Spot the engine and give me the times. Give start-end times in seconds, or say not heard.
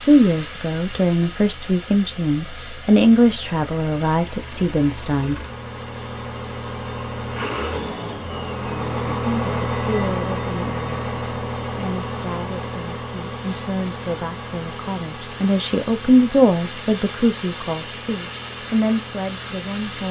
0.0-20.0.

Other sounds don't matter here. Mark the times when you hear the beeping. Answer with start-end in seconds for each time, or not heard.
not heard.